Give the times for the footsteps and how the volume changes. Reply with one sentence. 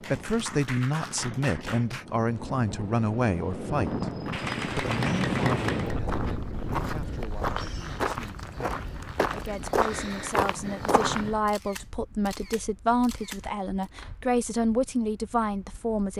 You can hear the footsteps from 3.7 to 11.3 s, getting louder.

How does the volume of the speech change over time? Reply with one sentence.
The loudness of the speech goes down, then up.